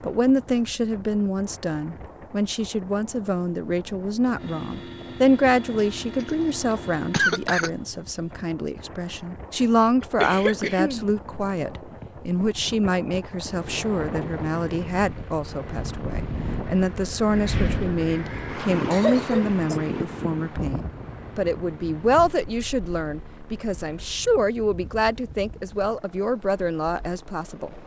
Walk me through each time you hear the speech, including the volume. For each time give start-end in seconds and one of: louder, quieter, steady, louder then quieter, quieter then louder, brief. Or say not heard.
0.0-27.7 steady.